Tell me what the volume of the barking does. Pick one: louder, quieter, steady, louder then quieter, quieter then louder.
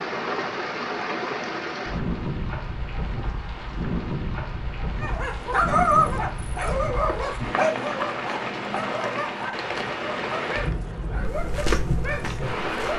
quieter.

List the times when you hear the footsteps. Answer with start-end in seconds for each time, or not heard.
11.2-12.9.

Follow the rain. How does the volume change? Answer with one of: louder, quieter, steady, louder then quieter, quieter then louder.
steady.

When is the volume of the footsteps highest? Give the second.
12 s.